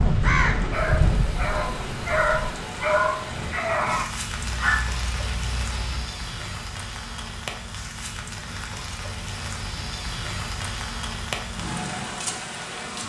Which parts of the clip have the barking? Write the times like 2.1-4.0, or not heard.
0.7-6.0.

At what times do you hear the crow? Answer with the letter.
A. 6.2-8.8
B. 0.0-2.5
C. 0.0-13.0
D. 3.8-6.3
B.